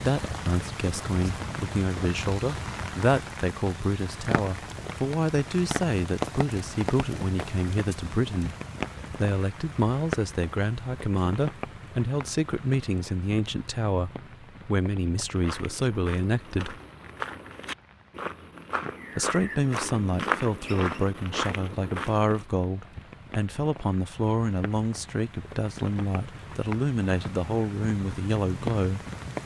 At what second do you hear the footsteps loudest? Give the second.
20 s.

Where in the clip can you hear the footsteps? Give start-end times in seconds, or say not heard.
15.3-22.4.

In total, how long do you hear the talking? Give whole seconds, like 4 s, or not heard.
26 s.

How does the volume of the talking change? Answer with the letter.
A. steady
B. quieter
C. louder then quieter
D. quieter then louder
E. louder
A.